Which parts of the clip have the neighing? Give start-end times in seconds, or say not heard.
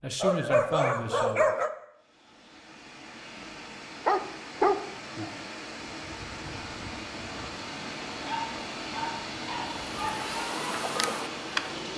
not heard.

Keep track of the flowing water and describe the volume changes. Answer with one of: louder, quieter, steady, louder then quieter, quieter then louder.
louder.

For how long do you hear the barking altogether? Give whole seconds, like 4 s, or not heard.
5 s.